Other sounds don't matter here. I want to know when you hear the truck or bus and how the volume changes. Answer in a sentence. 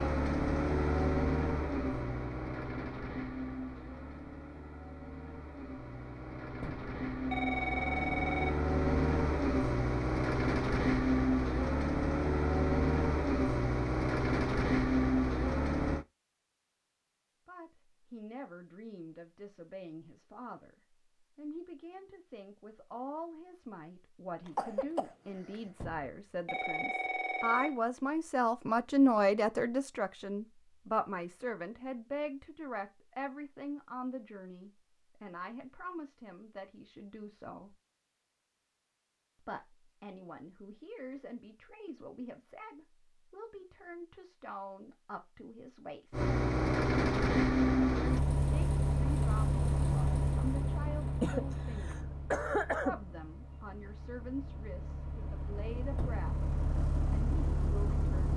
You can hear the truck or bus from 0.0 to 16.1 s, getting quieter then louder; and from 46.1 to 58.3 s, getting quieter then louder.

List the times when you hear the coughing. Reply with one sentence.
The coughing can be heard from 24.4 to 25.6 s and from 51.2 to 53.0 s.